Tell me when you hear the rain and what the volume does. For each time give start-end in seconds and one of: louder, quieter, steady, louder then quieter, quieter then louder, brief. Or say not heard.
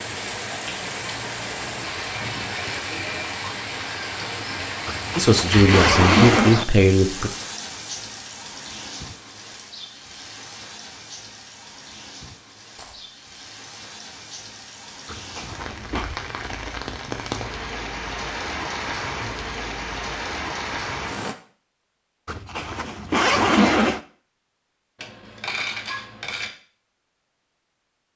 0.0-21.4 quieter then louder.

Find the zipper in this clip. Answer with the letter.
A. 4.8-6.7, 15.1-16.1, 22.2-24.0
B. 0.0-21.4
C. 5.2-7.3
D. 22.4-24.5
A.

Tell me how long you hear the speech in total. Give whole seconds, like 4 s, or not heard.
2 s.